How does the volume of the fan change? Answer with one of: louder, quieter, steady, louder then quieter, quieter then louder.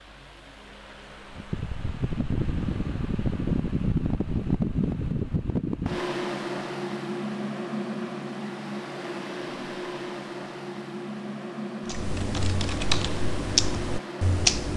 louder then quieter.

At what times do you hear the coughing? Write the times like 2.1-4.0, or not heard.
not heard.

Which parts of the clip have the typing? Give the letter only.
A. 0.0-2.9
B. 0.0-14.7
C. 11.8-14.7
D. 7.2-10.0
C.